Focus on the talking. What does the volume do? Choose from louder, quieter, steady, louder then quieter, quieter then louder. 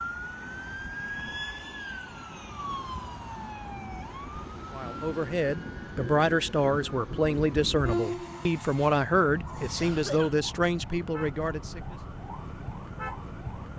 steady.